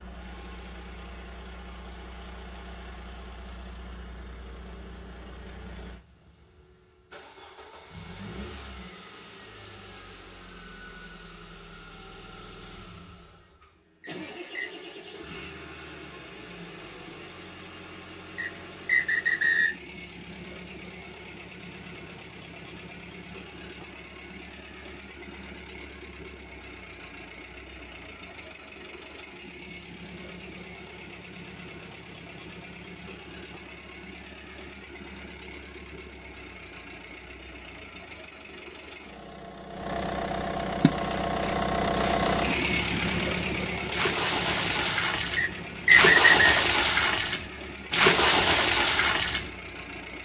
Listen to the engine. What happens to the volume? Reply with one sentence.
The volume of the engine goes up.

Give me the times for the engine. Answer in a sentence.
You can hear the engine from 0.0 to 50.1 s.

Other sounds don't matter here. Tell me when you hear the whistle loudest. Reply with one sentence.
The loudest moment of the whistle is at 46 seconds.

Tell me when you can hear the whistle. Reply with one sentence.
You can hear the whistle from 14.0 to 14.7 s, from 18.4 to 19.8 s and from 45.4 to 46.5 s.